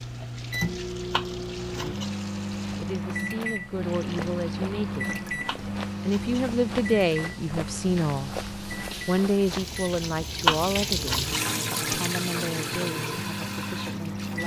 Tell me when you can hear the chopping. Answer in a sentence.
You can hear the chopping from 1.1 to 2.1 s, from 5.5 to 6.4 s and from 10.4 to 11.4 s.